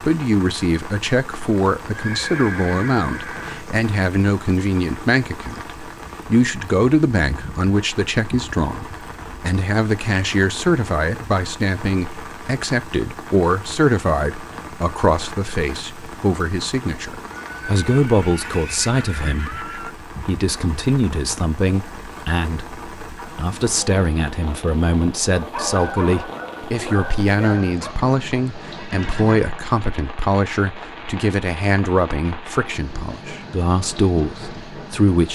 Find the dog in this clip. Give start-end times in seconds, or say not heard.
25.4-27.9.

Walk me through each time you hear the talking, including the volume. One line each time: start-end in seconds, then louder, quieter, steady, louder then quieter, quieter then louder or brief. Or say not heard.
0.0-35.3 steady.